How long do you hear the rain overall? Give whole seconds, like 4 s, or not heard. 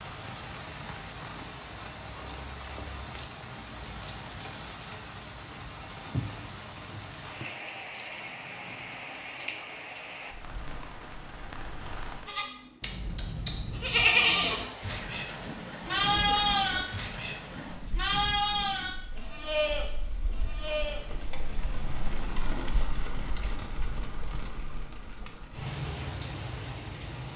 27 s.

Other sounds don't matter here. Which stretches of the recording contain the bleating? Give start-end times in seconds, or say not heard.
12.2-21.1.